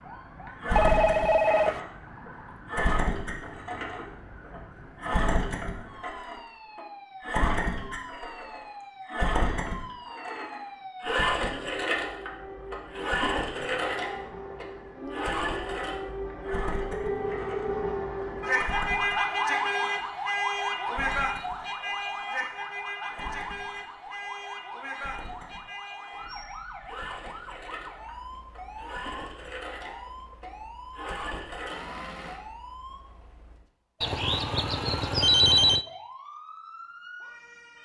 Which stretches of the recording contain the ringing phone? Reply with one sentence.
The ringing phone can be heard from 0.8 to 1.8 s, from 17.0 to 17.8 s and from 34.0 to 35.9 s.